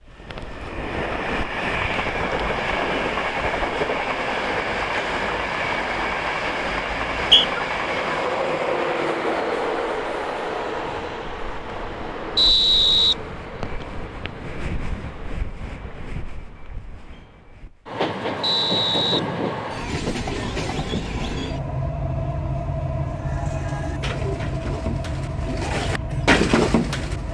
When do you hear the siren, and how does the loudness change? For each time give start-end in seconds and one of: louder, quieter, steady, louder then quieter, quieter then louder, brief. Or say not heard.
not heard.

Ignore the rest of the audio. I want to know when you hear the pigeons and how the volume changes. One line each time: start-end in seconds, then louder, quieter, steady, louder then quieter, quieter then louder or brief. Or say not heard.
23.0-27.2 louder.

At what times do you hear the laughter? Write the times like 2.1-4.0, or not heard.
not heard.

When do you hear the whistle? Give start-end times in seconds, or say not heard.
6.9-7.5, 12.3-13.8, 18.4-19.2.